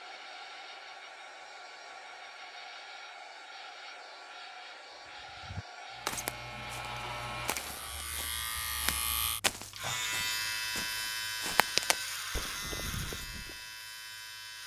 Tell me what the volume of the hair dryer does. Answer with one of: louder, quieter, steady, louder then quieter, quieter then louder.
steady.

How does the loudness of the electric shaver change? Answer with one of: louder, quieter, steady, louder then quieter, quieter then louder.
louder then quieter.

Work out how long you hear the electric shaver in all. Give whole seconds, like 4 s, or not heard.
9 s.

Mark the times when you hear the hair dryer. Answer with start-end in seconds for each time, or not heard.
0.0-8.1.